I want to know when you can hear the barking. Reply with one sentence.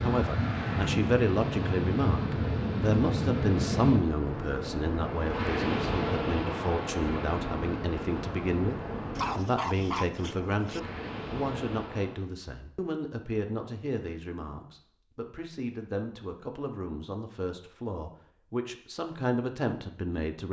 The barking can be heard from 9.2 to 10.8 s.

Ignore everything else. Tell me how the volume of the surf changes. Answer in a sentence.
The loudness of the surf goes down.